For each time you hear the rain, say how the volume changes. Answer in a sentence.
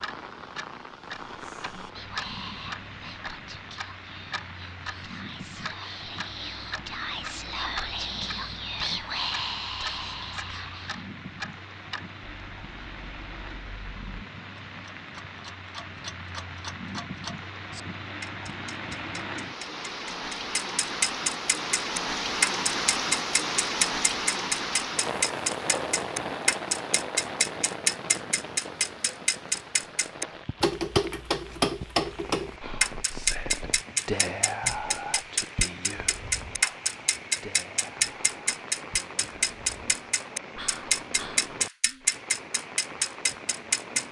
You can hear the rain from 0.0 to 44.0 s, getting louder then quieter.